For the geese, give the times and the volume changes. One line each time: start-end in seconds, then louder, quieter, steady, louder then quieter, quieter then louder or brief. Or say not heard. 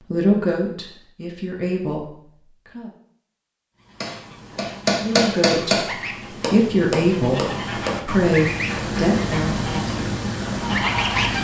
3.8-11.3 louder.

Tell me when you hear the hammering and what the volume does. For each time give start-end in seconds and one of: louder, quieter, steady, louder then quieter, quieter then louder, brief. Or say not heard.
4.0-9.2 quieter.